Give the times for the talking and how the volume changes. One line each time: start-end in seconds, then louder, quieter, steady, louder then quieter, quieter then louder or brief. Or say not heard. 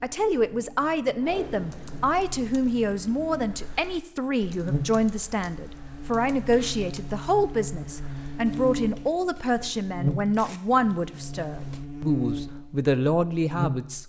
0.0-14.0 steady.